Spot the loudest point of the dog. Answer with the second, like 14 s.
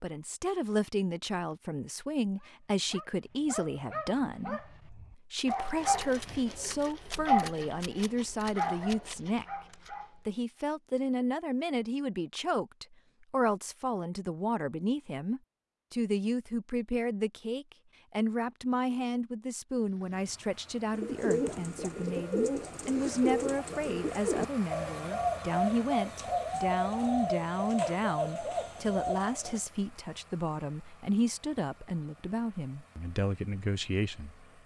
7 s.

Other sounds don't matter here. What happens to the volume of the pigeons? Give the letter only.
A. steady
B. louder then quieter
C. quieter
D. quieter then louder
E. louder
A.